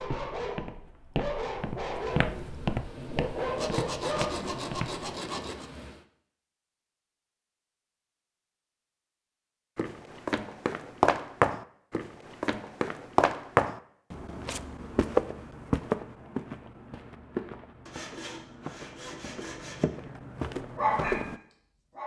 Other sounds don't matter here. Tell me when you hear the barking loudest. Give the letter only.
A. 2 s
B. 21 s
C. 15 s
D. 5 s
B.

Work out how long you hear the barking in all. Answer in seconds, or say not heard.
6 s.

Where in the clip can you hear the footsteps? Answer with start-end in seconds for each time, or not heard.
0.0-5.0, 9.8-21.4.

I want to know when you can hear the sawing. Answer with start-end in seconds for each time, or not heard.
3.5-5.7, 17.9-19.9.